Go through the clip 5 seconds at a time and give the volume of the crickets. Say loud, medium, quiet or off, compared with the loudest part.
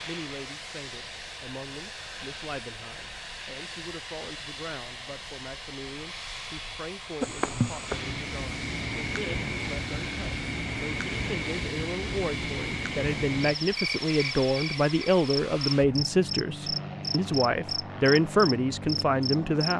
off, loud, loud, loud.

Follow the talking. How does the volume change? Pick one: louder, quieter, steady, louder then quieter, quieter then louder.
louder.